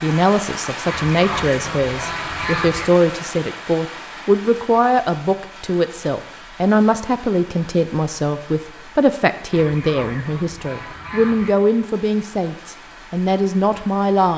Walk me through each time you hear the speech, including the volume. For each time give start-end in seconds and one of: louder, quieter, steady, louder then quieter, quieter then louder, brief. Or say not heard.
0.0-14.3 steady.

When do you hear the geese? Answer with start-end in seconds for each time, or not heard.
0.8-2.9, 9.5-11.6.